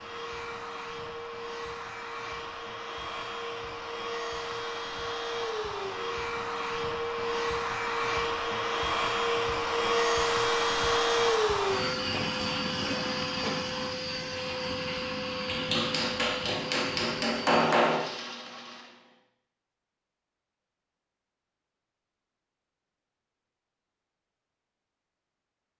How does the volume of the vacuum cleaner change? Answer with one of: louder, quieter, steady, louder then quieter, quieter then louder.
louder then quieter.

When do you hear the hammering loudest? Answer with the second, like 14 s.
18 s.